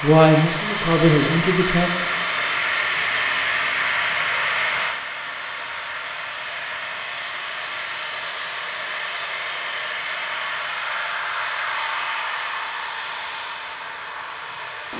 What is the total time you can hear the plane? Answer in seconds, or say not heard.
15 s.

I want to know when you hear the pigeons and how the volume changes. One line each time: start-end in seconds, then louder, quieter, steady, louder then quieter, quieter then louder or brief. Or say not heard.
not heard.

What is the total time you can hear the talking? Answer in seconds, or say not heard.
2 s.